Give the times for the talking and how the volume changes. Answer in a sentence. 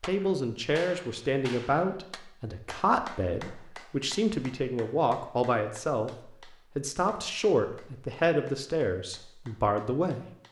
The talking can be heard from 0.0 to 10.2 s, at a steady volume.